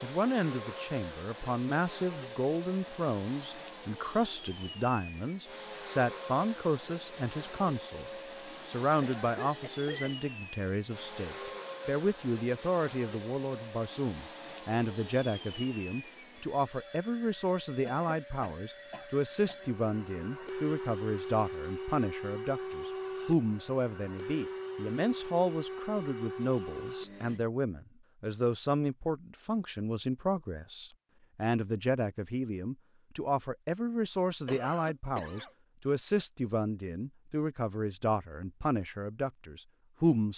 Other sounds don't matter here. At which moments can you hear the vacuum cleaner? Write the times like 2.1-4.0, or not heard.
0.0-27.4.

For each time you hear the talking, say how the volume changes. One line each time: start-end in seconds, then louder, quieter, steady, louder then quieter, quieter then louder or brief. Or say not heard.
0.0-8.1 steady
8.7-40.3 steady.